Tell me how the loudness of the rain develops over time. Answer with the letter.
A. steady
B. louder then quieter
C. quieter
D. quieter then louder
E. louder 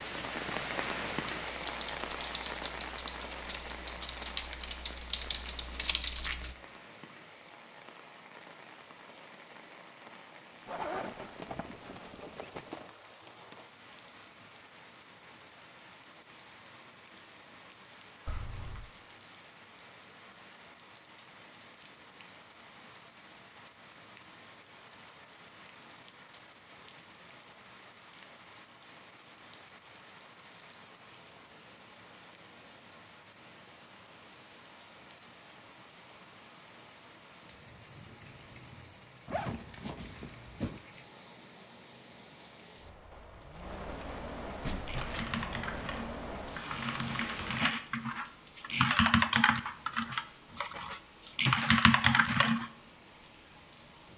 D.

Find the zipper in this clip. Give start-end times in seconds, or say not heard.
10.7-12.9, 18.2-18.9, 39.2-40.8.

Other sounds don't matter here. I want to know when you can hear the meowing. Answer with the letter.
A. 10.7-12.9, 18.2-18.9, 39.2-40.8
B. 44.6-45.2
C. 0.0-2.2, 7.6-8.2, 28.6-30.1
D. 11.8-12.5
B.